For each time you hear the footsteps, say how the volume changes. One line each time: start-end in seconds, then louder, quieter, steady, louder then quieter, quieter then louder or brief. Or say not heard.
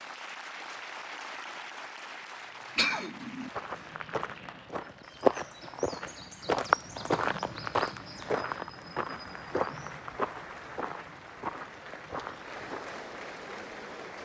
3.4-13.0 quieter.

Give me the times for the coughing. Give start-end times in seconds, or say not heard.
2.8-3.5.